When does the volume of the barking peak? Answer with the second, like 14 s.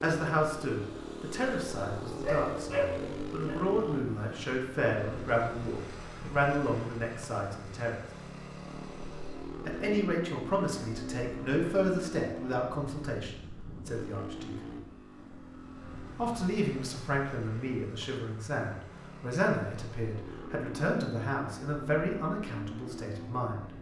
3 s.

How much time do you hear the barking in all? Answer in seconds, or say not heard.
2 s.